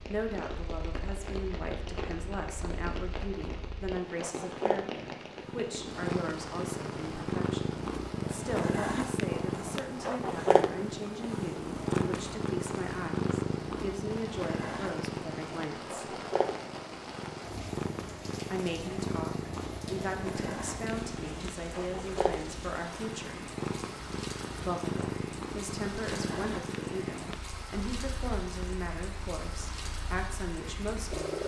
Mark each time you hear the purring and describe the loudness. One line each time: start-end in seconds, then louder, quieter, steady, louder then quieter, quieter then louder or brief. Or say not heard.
0.0-31.4 louder then quieter.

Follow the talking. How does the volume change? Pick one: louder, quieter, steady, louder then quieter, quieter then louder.
steady.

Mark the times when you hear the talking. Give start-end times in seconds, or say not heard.
0.1-16.1, 18.5-23.4, 24.6-31.4.